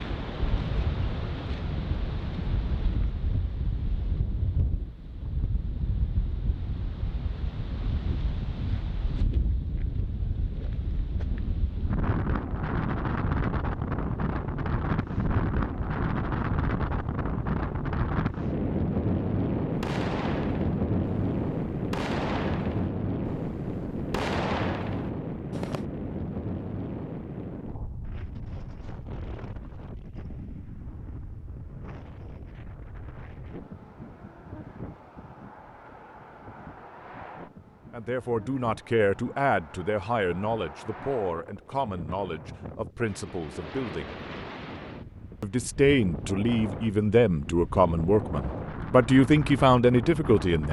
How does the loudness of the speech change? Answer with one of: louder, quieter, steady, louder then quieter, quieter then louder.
louder.